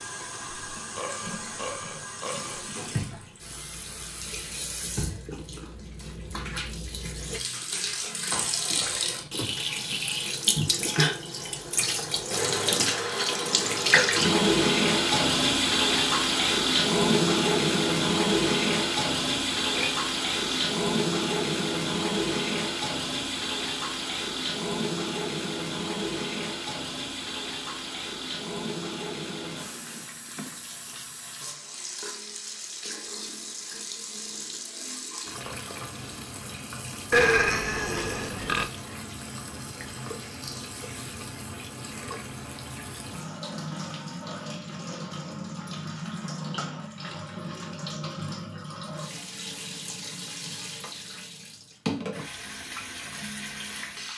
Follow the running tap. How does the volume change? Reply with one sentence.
The loudness of the running tap goes up, then down.